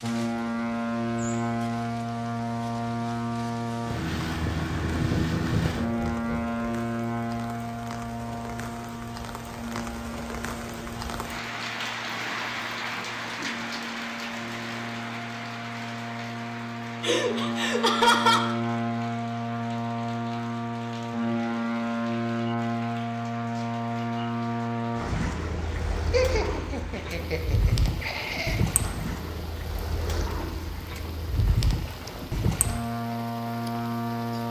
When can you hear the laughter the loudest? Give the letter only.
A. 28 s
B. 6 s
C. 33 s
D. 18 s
D.